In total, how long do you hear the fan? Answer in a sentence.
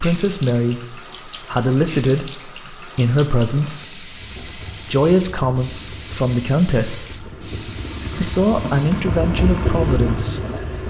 The fan can be heard for 7 seconds in total.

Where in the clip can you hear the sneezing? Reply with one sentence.
The sneezing can't be heard in this clip.